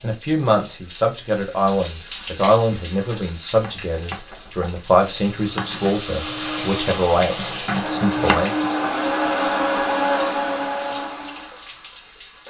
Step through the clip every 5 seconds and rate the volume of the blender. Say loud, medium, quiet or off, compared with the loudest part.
off, loud, loud.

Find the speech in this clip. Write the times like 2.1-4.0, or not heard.
0.0-8.6.